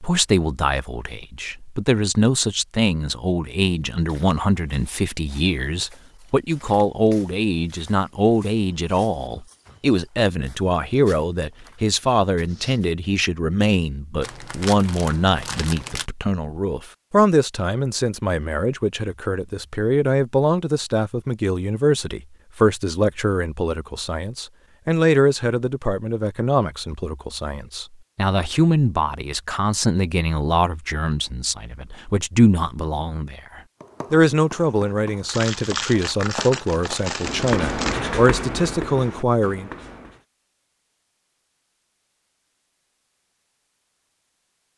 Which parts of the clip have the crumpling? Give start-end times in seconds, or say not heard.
14.2-16.1, 35.2-38.0.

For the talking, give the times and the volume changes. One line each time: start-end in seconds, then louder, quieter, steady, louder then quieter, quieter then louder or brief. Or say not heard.
0.0-39.7 steady.